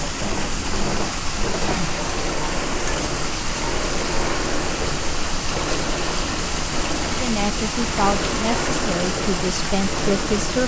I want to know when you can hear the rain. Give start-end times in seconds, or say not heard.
0.0-10.6.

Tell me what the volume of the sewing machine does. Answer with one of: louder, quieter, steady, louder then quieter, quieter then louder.
steady.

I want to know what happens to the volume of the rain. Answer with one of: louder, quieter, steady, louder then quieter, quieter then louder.
steady.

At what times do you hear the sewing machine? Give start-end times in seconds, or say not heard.
0.0-10.6.